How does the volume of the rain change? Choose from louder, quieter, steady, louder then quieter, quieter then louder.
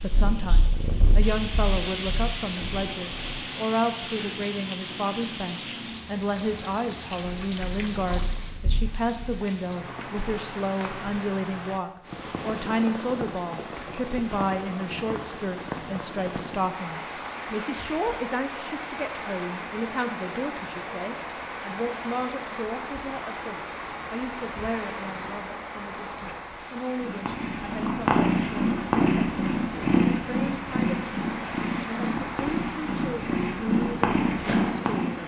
steady.